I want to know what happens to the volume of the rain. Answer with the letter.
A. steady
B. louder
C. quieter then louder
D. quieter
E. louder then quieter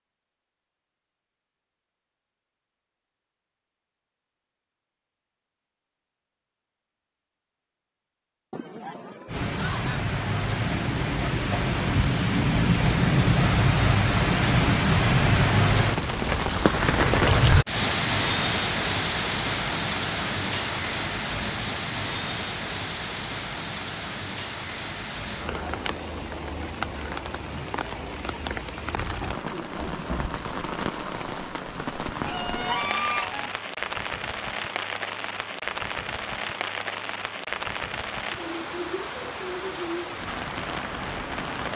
D.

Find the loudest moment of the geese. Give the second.
33 s.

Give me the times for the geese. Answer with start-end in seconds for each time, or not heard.
8.5-10.1, 32.2-33.5.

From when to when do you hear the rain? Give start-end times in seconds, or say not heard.
9.2-41.7.